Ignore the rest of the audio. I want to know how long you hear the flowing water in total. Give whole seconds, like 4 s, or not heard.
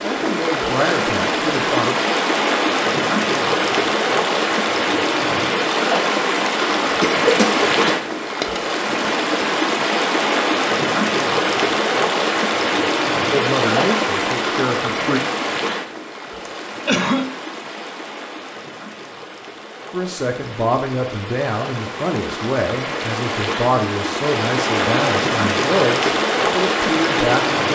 28 s.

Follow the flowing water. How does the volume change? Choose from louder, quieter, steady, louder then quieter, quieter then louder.
quieter then louder.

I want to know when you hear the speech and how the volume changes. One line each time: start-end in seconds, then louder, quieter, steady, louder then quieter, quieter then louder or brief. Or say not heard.
0.0-1.9 brief
13.3-15.2 brief
19.9-27.7 steady.